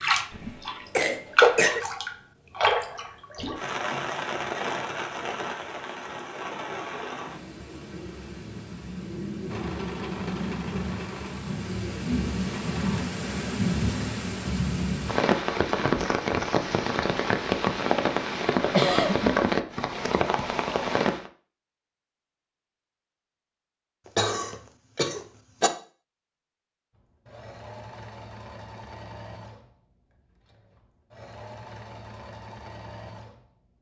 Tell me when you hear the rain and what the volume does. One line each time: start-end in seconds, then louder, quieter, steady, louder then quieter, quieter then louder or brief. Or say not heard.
0.0-21.3 quieter then louder.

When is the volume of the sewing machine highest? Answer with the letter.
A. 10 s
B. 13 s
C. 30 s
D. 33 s
A.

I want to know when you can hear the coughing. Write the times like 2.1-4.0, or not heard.
0.3-1.8, 18.6-19.4, 24.1-25.7.